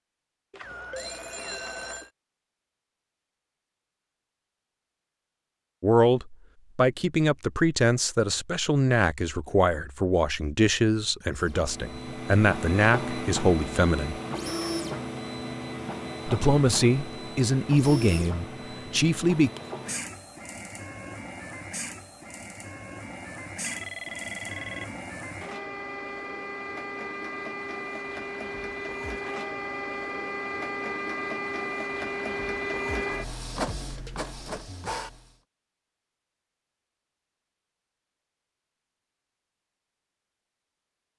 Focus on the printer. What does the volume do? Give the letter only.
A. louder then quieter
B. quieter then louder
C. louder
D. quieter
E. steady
B.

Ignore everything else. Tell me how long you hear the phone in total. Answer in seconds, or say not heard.
3 s.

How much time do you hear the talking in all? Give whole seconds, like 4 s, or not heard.
12 s.